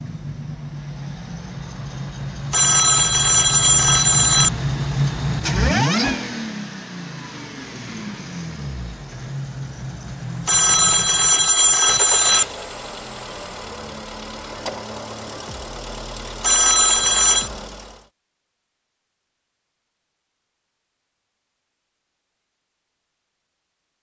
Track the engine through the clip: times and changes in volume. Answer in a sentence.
You can hear the engine from 0.0 to 18.1 s, getting louder then quieter.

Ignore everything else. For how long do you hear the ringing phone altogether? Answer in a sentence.
The ringing phone can be heard for 5 seconds in total.